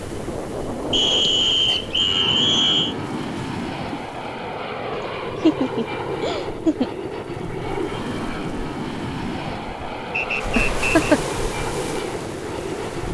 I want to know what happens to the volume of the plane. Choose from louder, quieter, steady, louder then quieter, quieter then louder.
steady.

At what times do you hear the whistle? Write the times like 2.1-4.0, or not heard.
0.9-3.0, 10.1-11.1.